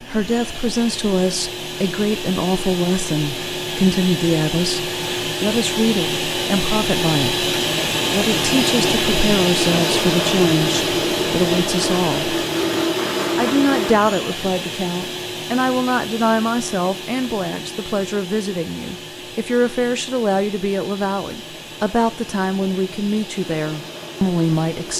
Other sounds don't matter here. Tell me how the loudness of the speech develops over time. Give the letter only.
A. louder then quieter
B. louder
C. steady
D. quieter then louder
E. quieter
C.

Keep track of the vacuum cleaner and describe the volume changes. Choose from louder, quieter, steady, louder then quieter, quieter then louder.
louder then quieter.